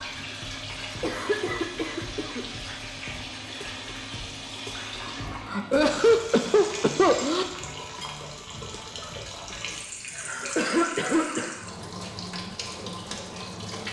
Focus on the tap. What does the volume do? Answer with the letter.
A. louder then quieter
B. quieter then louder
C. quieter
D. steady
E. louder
D.